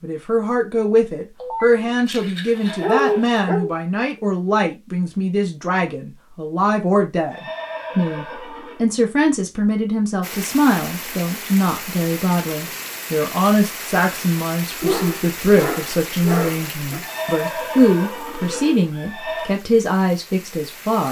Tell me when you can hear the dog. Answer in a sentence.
You can hear the dog from 1.4 to 3.7 s and from 14.8 to 17.0 s.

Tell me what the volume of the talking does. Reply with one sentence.
The volume of the talking stays about the same.